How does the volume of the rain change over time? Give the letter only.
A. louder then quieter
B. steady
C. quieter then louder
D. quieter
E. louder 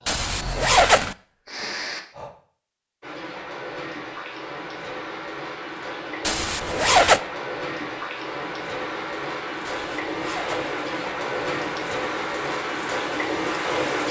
E.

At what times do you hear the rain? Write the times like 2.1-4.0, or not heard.
3.0-14.0.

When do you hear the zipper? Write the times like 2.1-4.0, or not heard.
0.1-1.1, 6.2-7.2, 9.7-10.8.